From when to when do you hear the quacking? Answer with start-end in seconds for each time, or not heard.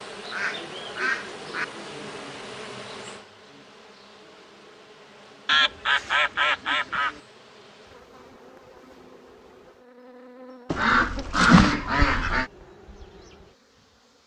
0.2-1.6, 5.5-7.2, 10.7-12.4.